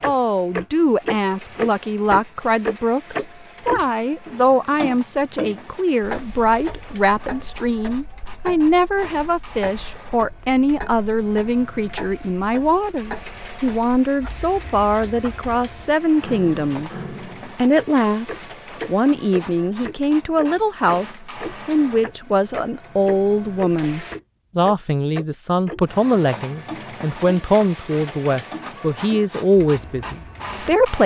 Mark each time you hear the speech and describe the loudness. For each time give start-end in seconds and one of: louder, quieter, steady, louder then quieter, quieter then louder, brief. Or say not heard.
0.0-31.0 steady.